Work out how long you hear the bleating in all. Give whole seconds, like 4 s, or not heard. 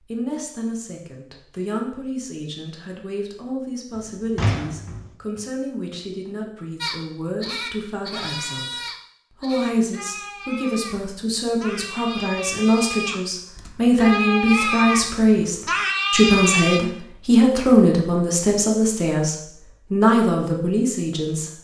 10 s.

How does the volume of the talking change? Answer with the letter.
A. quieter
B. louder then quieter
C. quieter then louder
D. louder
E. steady
D.